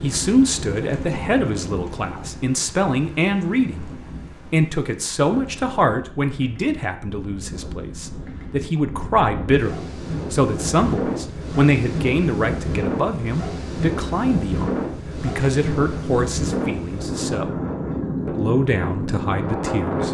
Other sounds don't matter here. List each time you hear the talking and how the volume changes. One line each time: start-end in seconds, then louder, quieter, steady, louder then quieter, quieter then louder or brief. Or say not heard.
0.0-17.6 steady
18.2-20.0 brief.